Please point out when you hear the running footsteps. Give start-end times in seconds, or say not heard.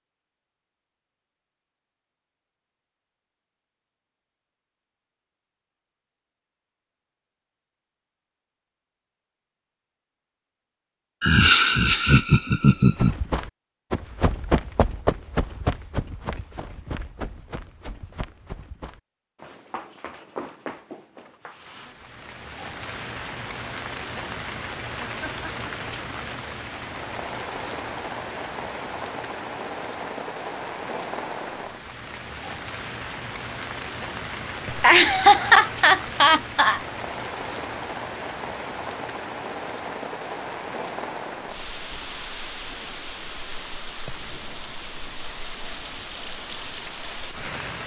12.9-21.6.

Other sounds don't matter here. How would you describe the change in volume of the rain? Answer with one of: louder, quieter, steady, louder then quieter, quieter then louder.
steady.